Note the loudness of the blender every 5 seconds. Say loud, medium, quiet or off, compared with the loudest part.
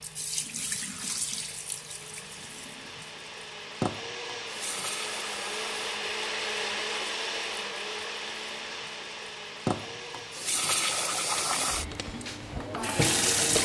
medium, loud, medium.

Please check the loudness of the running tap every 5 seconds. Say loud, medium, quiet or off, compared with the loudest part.
medium, medium, loud.